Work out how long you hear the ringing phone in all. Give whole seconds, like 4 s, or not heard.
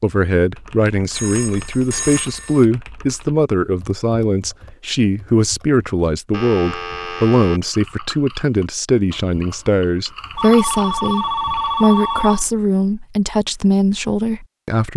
5 s.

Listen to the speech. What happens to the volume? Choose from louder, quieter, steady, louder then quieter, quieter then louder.
steady.